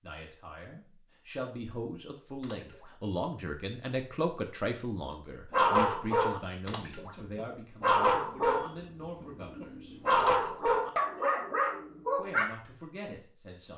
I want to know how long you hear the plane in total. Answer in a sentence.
The plane can't be heard in this clip.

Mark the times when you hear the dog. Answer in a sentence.
The dog can be heard from 5.5 to 12.4 s.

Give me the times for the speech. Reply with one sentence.
The speech can be heard from 0.0 to 9.9 s and from 12.2 to 13.7 s.